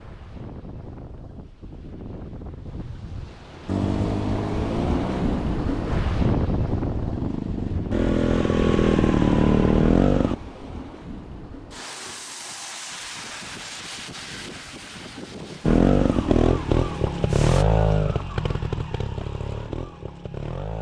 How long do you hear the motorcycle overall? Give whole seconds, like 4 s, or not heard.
12 s.